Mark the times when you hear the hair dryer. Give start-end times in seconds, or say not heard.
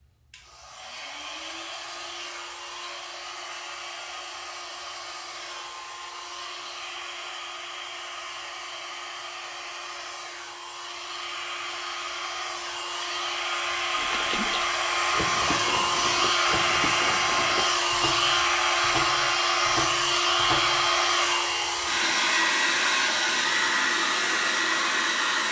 0.0-25.4.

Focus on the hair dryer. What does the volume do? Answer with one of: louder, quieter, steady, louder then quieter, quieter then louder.
louder.